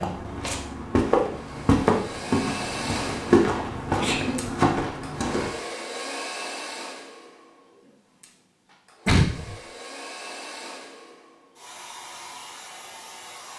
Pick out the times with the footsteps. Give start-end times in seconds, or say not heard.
0.0-5.5.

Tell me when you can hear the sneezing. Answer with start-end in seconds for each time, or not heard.
4.0-4.5, 9.1-9.6.